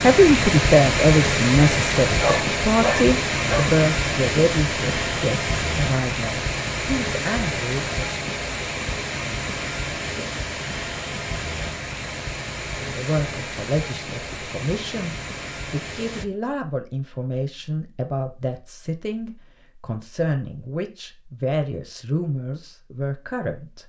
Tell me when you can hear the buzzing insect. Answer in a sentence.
You can't hear the buzzing insect here.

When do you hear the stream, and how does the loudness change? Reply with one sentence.
You can hear the stream from 0.0 to 16.2 s, getting quieter.